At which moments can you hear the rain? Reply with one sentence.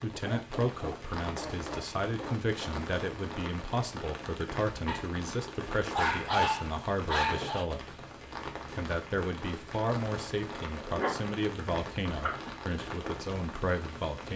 You can hear the rain from 0.0 to 14.3 s.